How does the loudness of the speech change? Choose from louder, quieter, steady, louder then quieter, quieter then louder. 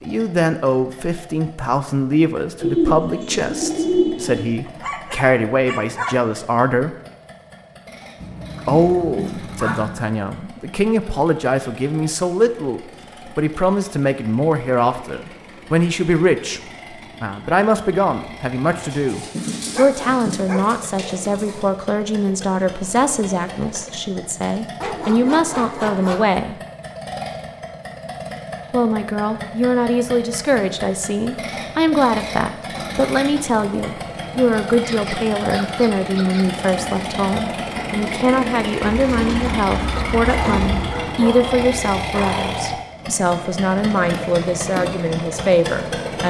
steady.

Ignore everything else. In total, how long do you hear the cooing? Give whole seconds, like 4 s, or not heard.
7 s.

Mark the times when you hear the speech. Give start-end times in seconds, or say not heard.
0.0-6.9, 8.7-16.6, 17.2-26.6, 28.7-46.2.